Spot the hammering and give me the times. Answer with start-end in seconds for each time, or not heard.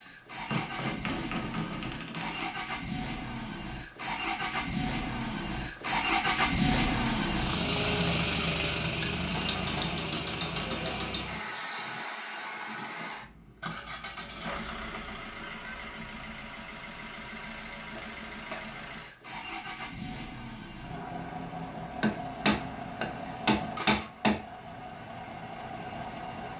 0.5-2.5, 9.3-11.2, 22.0-24.4.